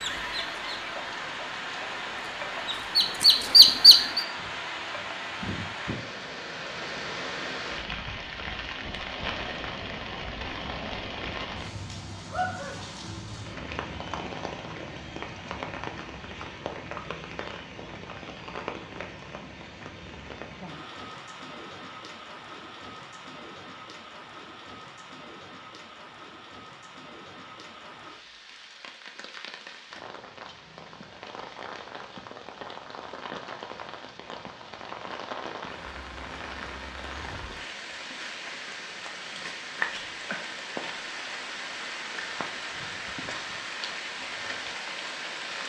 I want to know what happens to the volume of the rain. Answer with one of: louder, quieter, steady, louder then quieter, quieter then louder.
quieter then louder.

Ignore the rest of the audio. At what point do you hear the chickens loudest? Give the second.
4 s.